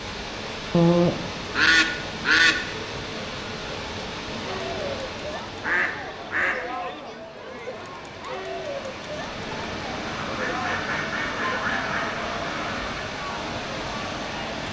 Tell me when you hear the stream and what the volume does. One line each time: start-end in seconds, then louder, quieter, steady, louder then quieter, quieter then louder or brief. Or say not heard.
0.0-14.6 quieter then louder.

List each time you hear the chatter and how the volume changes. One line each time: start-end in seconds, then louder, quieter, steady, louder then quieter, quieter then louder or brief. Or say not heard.
4.4-14.6 steady.